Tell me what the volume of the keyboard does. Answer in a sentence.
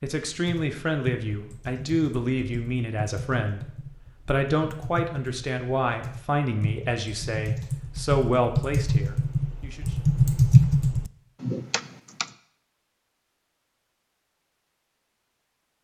The loudness of the keyboard goes up.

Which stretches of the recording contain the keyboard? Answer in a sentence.
The keyboard can be heard from 0.3 to 12.3 s.